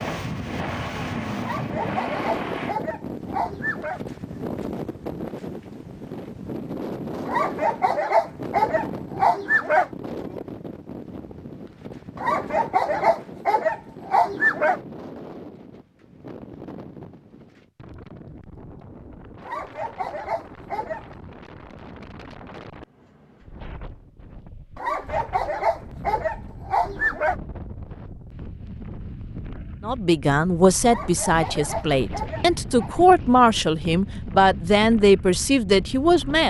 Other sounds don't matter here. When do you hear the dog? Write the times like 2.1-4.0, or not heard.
1.4-4.0, 7.2-9.9, 12.2-14.8, 19.4-21.1, 24.8-27.4, 30.9-32.9.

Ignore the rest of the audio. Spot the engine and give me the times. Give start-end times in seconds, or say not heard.
0.0-2.8.